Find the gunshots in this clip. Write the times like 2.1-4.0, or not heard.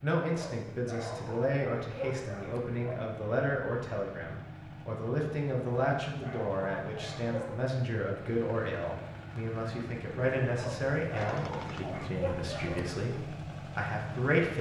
11.2-12.1.